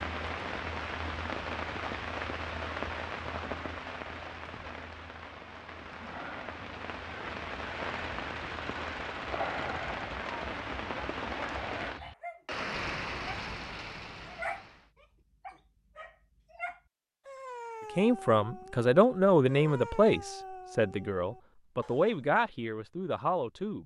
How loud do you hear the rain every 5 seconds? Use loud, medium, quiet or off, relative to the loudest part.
loud, loud, loud, off, off.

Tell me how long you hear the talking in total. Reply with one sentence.
You can hear the talking for 6 seconds altogether.